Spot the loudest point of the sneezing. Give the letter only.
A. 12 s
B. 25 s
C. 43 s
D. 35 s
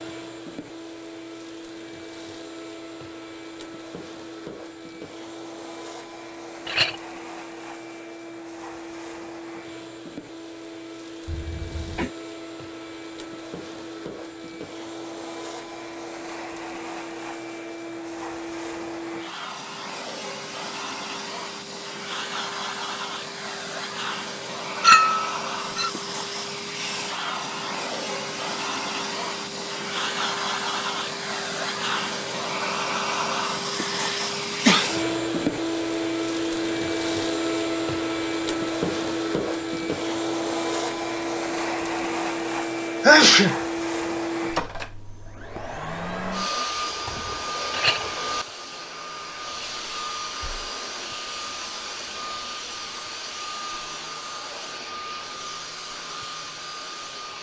C.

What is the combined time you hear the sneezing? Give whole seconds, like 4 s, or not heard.
3 s.